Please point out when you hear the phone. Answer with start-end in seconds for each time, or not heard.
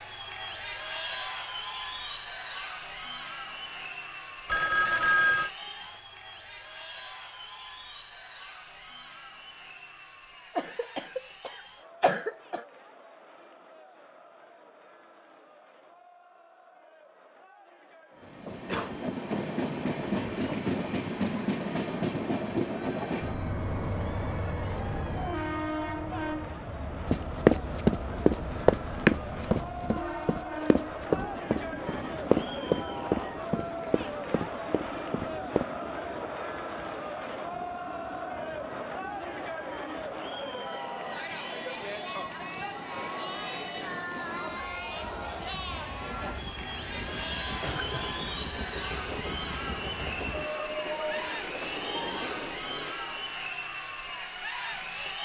4.5-5.5.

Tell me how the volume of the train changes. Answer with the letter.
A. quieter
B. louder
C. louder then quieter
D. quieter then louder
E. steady
D.